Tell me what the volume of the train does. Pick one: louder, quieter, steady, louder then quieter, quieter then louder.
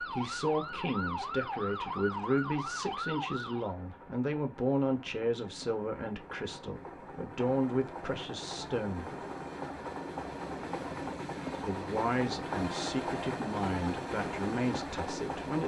louder.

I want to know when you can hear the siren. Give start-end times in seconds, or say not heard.
0.0-3.8.